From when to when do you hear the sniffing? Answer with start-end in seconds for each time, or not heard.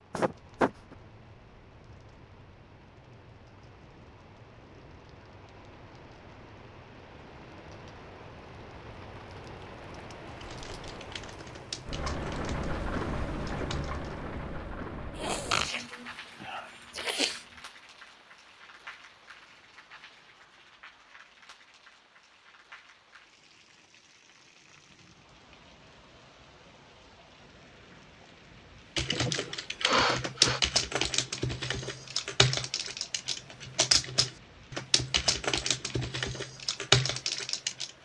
0.1-0.9, 15.2-17.4, 29.1-30.6.